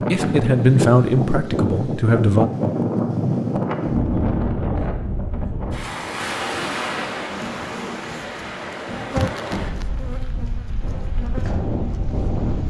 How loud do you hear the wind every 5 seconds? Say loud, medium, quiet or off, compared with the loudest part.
loud, medium, medium.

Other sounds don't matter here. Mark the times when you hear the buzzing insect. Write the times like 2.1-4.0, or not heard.
7.3-12.6.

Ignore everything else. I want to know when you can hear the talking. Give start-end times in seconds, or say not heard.
0.1-2.5.